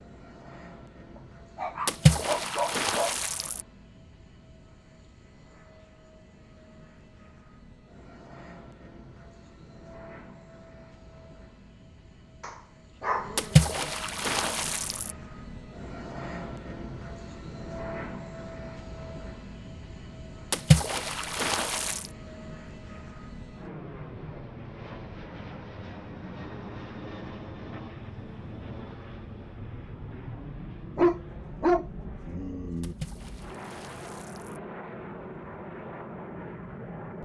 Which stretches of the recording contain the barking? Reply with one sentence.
You can hear the barking from 1.6 to 3.1 s, from 12.4 to 13.9 s and from 30.9 to 33.0 s.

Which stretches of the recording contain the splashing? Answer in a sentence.
You can hear the splashing from 1.9 to 3.6 s, from 13.3 to 15.1 s, from 20.5 to 22.1 s and from 32.8 to 34.6 s.